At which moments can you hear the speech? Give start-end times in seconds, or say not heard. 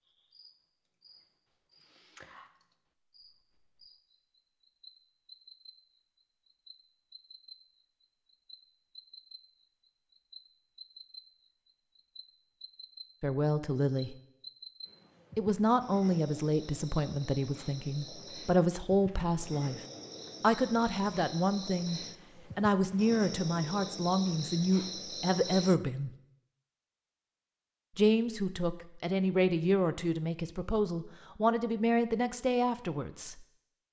13.2-14.2, 15.3-19.8, 20.4-26.1, 27.9-33.4.